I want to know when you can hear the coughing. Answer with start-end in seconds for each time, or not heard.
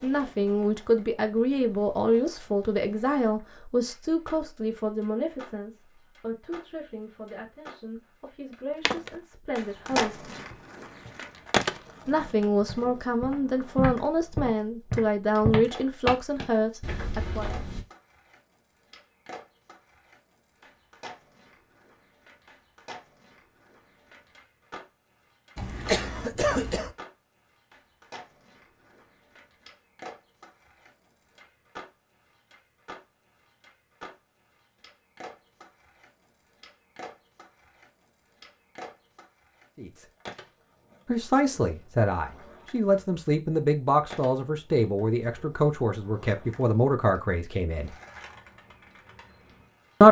25.6-26.9.